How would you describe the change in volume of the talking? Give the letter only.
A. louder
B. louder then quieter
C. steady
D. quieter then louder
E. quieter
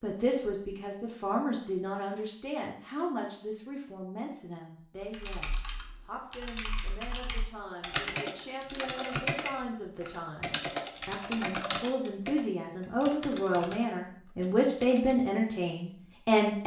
D.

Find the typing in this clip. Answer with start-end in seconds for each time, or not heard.
5.0-15.3.